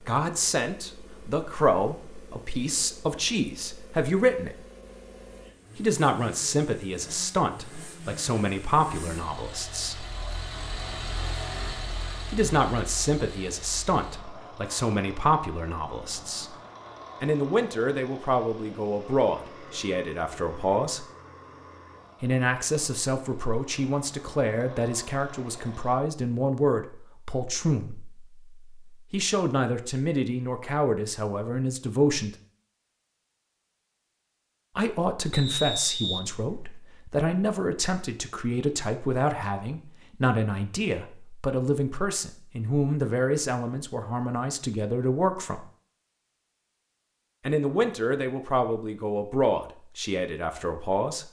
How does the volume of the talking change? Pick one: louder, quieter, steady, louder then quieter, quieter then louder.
steady.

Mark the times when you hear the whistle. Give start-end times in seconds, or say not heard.
35.3-36.7.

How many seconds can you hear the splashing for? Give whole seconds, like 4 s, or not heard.
not heard.